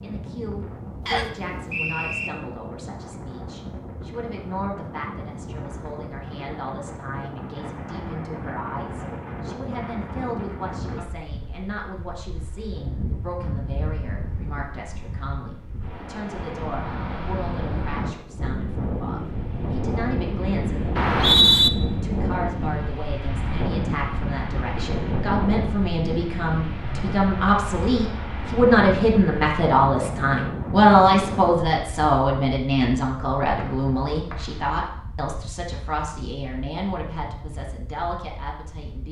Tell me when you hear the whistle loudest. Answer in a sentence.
The volume of the whistle peaks at 21 seconds.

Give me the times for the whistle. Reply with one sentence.
The whistle can be heard from 1.1 to 2.3 s, from 20.9 to 21.7 s and from 33.5 to 34.6 s.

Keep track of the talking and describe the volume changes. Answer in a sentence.
The loudness of the talking goes up, then down.